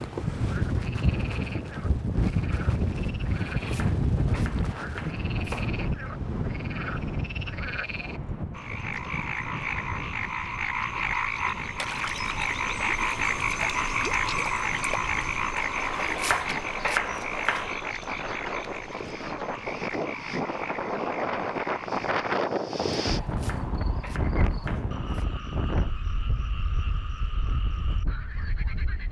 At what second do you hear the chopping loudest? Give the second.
17 s.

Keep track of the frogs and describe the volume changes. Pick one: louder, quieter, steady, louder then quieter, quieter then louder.
louder then quieter.